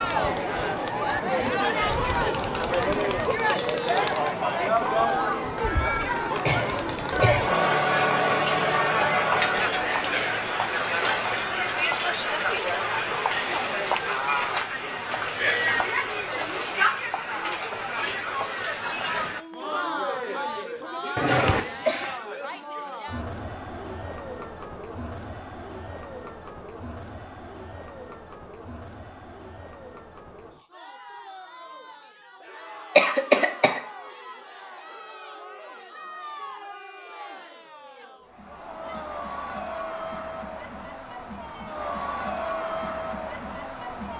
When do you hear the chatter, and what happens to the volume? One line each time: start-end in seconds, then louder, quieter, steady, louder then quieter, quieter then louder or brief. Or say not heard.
0.0-44.1 quieter then louder.